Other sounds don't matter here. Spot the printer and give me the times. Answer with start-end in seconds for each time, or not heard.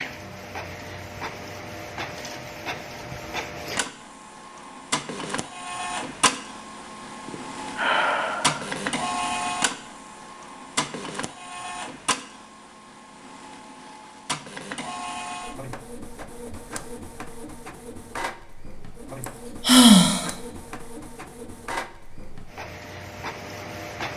0.0-24.1.